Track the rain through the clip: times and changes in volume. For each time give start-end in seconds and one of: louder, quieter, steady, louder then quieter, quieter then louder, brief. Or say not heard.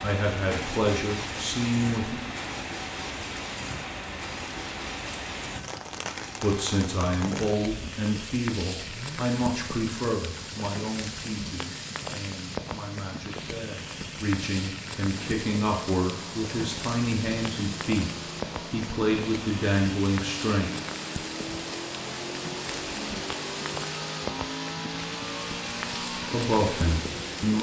0.0-27.5 steady.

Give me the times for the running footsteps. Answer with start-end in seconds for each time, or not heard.
not heard.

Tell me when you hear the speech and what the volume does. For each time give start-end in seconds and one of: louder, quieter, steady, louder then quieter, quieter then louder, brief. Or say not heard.
0.0-2.2 brief
6.4-20.7 quieter then louder
26.2-27.5 brief.